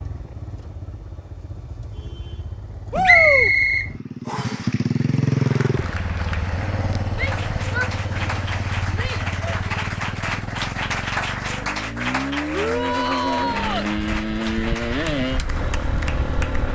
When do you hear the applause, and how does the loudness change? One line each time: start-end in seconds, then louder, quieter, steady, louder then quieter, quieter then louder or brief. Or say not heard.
5.2-16.6 louder then quieter.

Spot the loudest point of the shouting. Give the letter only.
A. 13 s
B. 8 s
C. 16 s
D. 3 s
D.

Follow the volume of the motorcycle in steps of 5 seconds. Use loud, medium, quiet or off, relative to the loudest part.
medium, loud, loud, loud.